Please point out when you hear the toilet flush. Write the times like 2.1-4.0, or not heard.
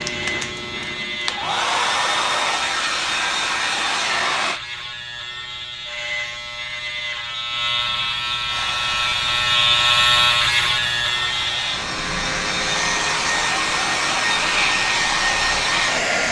not heard.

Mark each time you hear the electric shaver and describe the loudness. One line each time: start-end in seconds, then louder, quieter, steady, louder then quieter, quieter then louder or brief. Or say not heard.
0.0-16.2 louder then quieter.